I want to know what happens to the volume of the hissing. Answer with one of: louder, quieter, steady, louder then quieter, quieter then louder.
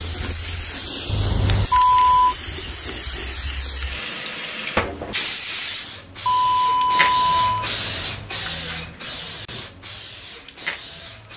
louder then quieter.